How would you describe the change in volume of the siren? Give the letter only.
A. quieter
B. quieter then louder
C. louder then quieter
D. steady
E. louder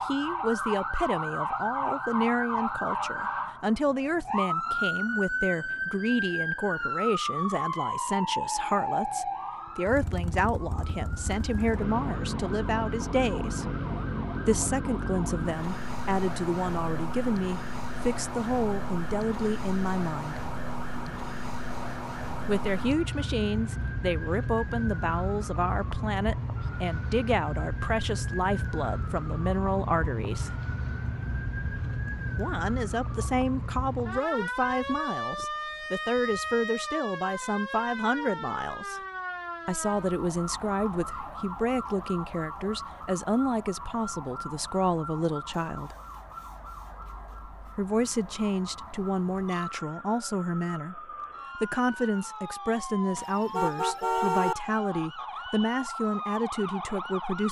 A.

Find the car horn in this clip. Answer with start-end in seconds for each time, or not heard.
53.1-54.5.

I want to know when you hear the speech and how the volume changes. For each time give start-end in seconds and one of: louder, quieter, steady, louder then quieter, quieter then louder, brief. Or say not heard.
0.0-13.7 steady
14.4-20.4 steady
22.4-30.5 steady
32.4-39.0 steady
39.6-46.0 steady
47.8-57.4 steady.